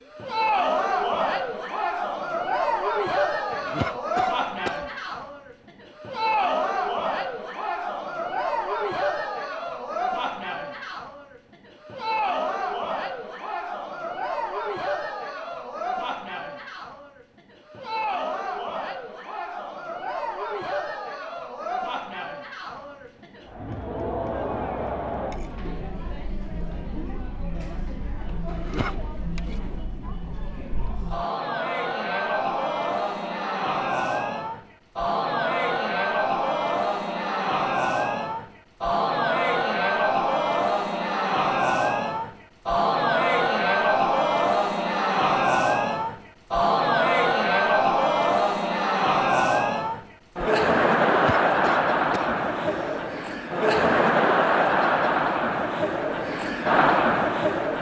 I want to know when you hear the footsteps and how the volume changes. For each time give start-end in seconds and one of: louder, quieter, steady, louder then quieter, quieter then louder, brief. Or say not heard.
not heard.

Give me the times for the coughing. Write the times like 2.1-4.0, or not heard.
3.5-4.9, 28.4-29.0, 51.0-53.0.